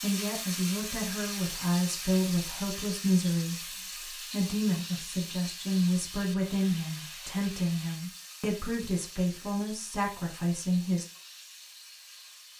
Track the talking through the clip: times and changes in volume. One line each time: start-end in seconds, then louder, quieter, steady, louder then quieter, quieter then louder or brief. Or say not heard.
0.0-11.1 steady.